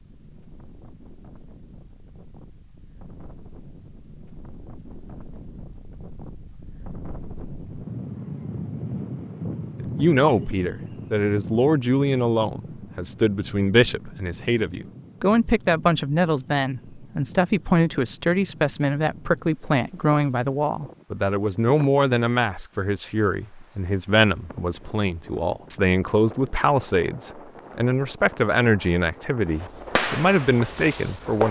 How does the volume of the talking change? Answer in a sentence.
The loudness of the talking stays about the same.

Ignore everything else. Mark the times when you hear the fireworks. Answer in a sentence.
The fireworks can be heard from 29.6 to 31.4 s.